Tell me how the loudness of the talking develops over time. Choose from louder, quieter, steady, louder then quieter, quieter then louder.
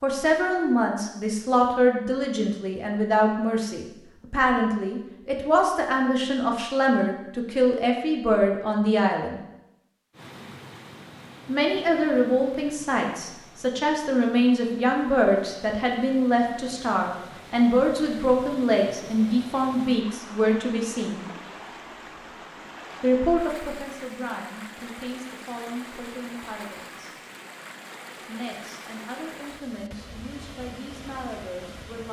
quieter.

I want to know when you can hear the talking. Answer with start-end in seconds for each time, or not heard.
0.0-9.4, 11.4-21.2, 23.0-27.1, 28.2-32.0.